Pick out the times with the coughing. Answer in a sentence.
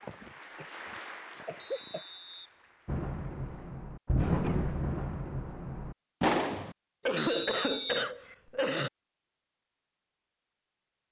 The coughing can be heard from 0.0 to 2.0 s and from 7.0 to 8.9 s.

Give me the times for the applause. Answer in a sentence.
You can hear the applause from 0.0 to 3.9 s.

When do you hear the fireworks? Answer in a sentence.
You can hear the fireworks from 2.9 to 8.1 s.